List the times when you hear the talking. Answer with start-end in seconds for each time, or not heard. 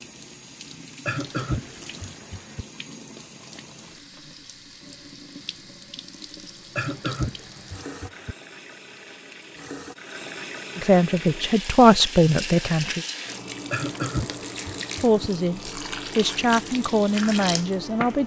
10.8-13.0, 15.0-18.2.